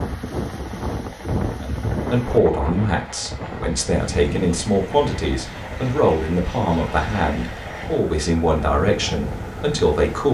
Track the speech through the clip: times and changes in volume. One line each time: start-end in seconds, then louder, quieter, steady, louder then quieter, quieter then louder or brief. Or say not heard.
1.5-10.2 steady.